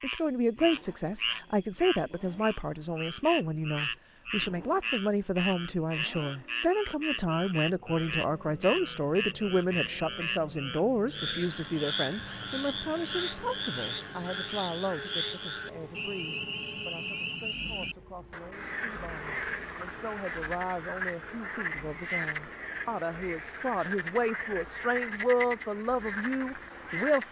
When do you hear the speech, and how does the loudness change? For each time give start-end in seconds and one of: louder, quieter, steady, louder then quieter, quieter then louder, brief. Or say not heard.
0.0-27.2 quieter then louder.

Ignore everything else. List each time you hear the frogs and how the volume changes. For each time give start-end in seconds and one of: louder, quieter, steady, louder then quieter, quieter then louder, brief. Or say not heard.
0.0-27.2 steady.